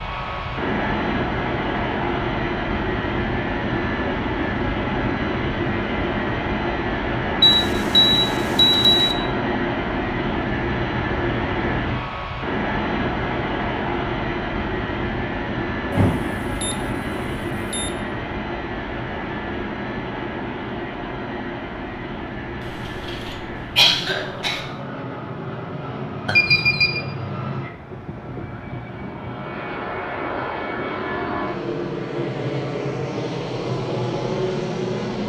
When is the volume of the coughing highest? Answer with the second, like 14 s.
24 s.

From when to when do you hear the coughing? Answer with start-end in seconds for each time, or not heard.
22.6-24.6.